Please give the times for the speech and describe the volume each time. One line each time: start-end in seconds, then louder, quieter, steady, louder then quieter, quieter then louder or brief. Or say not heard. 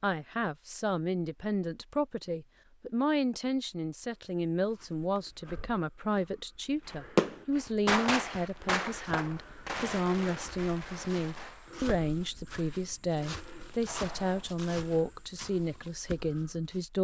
0.0-16.9 steady.